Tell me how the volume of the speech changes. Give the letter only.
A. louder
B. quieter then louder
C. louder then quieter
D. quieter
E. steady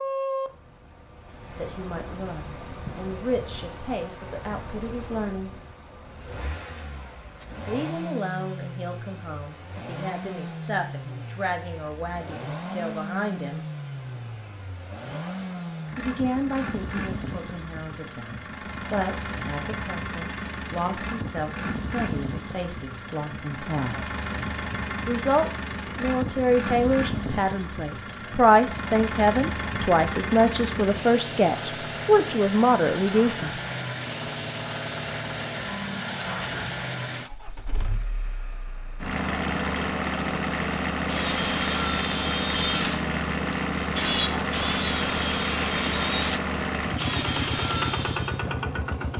A.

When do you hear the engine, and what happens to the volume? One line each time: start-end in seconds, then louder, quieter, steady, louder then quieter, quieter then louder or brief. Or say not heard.
0.0-49.1 louder.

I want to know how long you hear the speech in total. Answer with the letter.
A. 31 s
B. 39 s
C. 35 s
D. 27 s
D.